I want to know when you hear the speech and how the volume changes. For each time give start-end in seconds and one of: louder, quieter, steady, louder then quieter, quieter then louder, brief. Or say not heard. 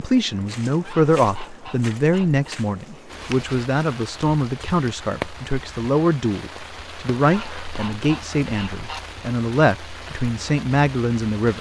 0.0-11.5 steady.